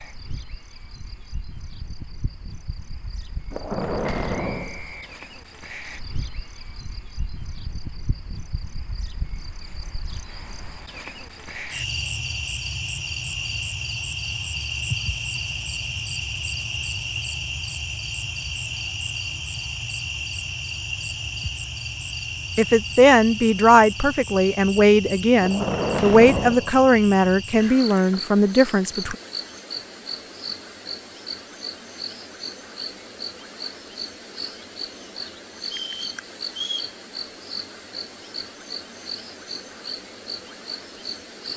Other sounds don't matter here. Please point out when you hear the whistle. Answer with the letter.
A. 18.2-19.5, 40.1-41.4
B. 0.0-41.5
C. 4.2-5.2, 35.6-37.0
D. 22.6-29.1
C.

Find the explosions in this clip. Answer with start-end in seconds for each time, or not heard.
3.5-4.8, 25.4-26.7.